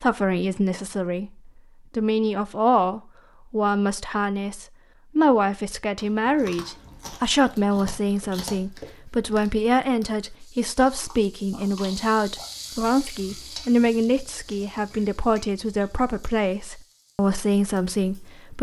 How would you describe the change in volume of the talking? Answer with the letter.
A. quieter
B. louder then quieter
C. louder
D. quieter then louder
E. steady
E.